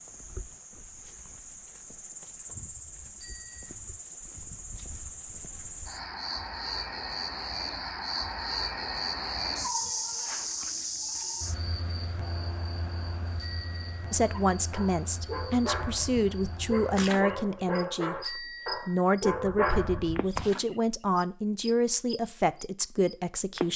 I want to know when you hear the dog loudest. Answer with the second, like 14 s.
20 s.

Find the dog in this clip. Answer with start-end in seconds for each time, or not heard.
14.5-20.5.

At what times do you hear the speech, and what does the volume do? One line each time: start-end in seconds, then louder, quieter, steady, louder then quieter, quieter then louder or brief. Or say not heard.
14.1-23.7 steady.